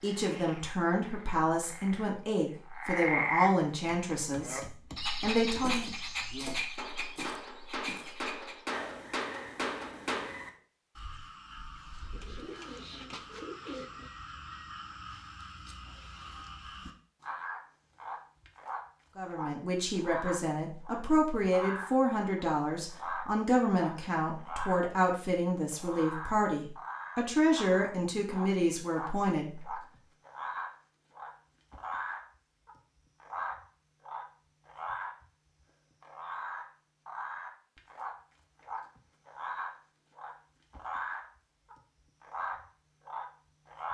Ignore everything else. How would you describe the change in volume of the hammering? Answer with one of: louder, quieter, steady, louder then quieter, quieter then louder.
louder.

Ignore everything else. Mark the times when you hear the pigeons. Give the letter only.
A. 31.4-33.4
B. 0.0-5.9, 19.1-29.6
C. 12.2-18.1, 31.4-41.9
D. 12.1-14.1
D.